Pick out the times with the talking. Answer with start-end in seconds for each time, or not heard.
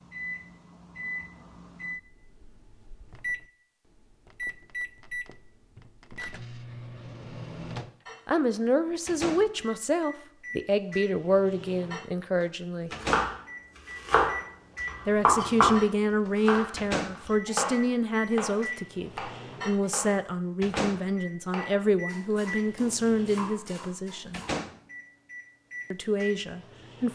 8.2-12.9, 15.1-24.4, 25.9-27.1.